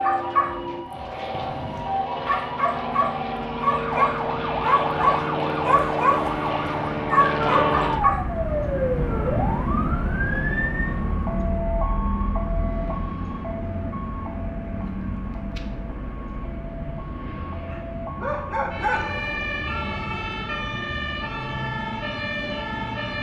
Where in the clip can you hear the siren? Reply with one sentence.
The siren can be heard from 0.0 to 23.1 s.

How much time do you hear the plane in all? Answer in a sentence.
The plane can be heard for 23 seconds in total.